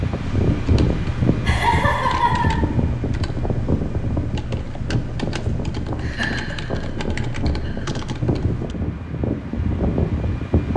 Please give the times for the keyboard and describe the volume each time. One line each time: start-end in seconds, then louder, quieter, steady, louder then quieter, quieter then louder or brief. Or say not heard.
0.1-8.8 steady.